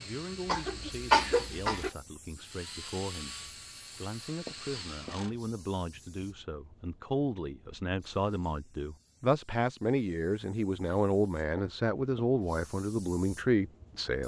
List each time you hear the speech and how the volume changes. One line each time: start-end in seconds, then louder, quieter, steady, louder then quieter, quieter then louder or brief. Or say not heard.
0.0-14.2 louder.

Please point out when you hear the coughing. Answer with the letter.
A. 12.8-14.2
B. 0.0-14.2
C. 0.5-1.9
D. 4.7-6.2
C.